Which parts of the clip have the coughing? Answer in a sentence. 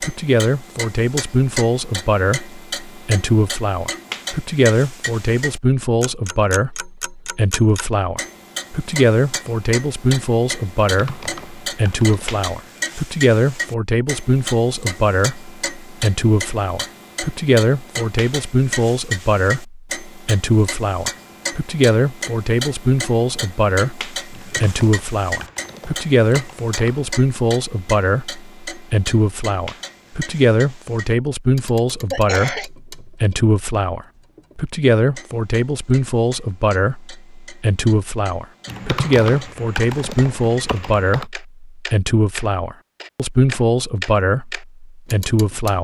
You can hear the coughing from 32.1 to 32.7 s.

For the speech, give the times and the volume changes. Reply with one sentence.
You can hear the speech from 0.0 to 45.8 s, at a steady volume.